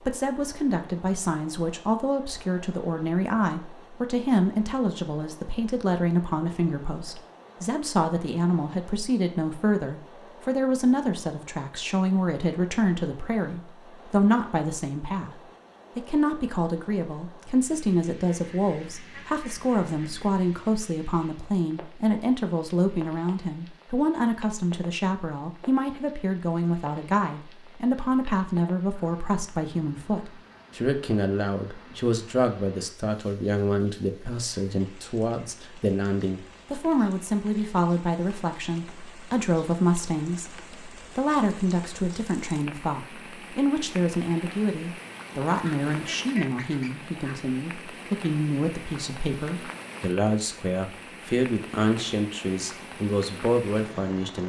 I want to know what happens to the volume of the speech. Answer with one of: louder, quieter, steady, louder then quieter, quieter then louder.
steady.